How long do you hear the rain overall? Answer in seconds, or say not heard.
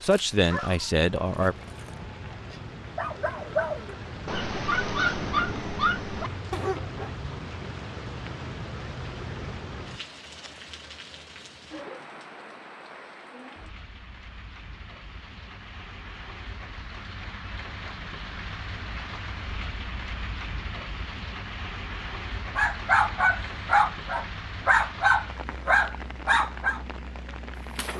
28 s.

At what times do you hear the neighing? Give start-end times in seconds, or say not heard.
not heard.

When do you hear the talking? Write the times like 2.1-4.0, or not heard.
0.0-1.6.